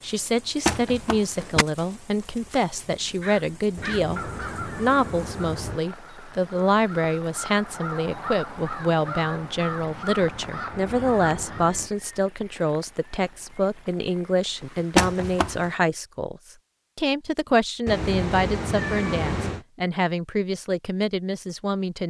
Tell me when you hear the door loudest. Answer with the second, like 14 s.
15 s.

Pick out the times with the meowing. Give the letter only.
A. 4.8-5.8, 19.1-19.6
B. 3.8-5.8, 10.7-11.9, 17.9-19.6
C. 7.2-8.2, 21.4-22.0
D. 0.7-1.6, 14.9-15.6
B.